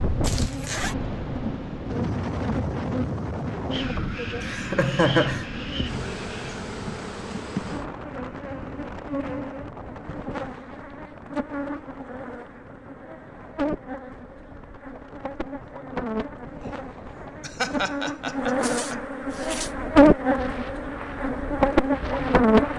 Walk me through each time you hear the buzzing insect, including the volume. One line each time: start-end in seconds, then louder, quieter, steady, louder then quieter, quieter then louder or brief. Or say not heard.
0.0-22.7 louder.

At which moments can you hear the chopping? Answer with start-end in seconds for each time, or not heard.
not heard.